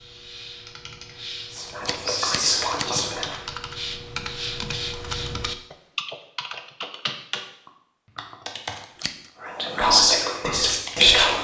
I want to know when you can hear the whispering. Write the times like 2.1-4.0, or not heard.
1.5-3.5, 9.4-11.3.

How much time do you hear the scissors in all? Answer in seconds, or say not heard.
2 s.